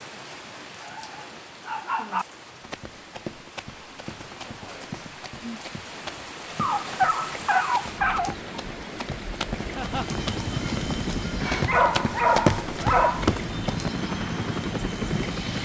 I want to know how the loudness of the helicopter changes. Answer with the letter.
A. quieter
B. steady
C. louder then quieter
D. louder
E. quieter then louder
E.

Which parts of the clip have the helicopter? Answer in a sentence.
You can hear the helicopter from 9.7 to 15.6 s.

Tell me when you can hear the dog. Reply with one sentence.
You can hear the dog from 0.8 to 2.2 s, from 6.6 to 8.3 s and from 11.7 to 13.2 s.